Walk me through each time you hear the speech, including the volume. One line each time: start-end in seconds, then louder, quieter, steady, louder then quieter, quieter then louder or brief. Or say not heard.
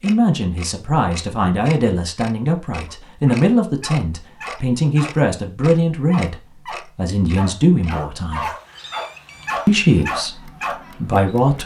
0.0-8.5 steady
9.7-11.6 brief.